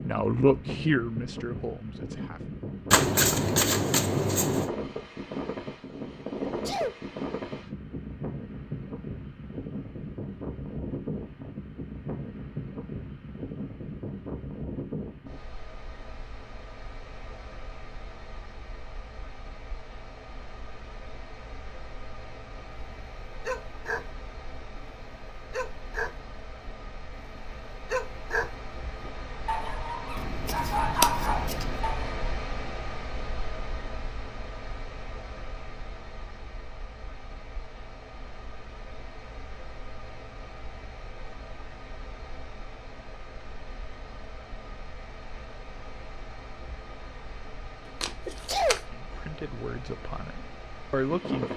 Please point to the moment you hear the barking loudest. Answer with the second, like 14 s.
31 s.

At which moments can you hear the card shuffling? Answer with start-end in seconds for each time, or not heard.
2.9-4.7, 30.1-31.8, 48.0-48.8.